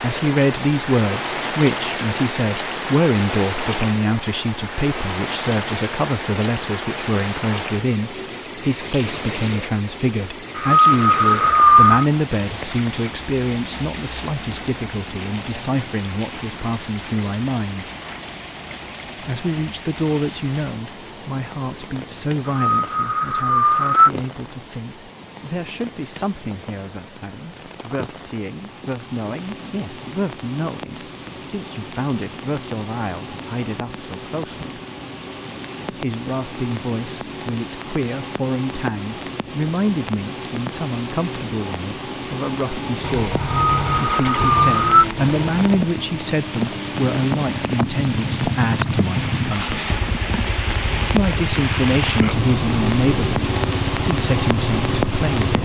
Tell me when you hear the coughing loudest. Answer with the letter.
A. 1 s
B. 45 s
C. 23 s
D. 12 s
D.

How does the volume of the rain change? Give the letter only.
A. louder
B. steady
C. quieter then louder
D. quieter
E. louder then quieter
C.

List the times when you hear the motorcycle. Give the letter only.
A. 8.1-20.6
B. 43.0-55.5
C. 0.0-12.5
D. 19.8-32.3
B.